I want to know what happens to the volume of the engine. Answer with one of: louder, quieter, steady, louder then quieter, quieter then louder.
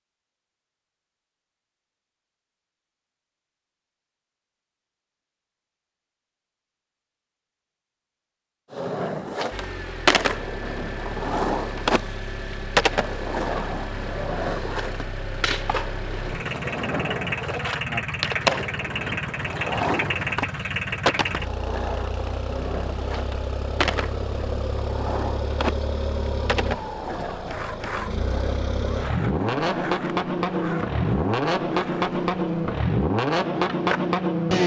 louder.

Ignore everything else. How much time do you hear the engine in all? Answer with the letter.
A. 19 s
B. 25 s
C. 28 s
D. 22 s
B.